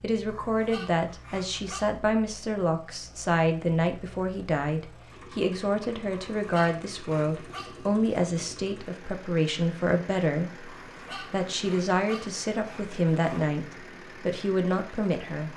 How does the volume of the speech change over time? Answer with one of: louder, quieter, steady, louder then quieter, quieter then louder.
steady.